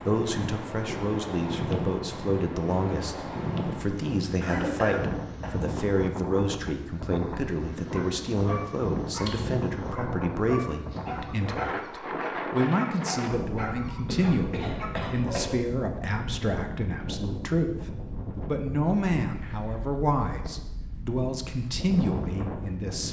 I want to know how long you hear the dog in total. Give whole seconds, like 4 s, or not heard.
8 s.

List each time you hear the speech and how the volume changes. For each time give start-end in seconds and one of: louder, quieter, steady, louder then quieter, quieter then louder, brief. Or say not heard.
0.1-23.0 steady.